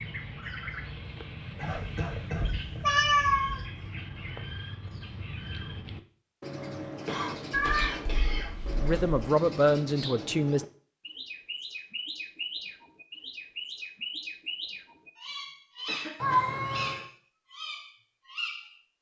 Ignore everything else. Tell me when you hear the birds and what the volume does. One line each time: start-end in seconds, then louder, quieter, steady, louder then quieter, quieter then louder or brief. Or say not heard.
0.0-18.9 steady.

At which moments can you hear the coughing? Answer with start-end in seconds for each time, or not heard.
1.6-2.5, 7.0-8.8, 15.8-16.8.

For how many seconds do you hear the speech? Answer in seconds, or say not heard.
2 s.